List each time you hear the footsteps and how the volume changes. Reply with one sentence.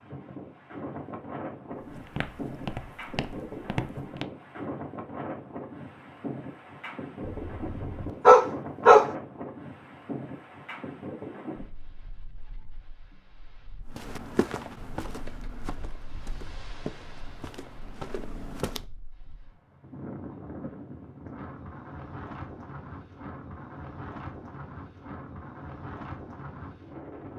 The footsteps can be heard briefly from 1.8 to 4.3 s; and from 13.9 to 18.9 s, getting quieter then louder.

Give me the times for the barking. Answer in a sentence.
You can hear the barking from 7.2 to 9.1 s.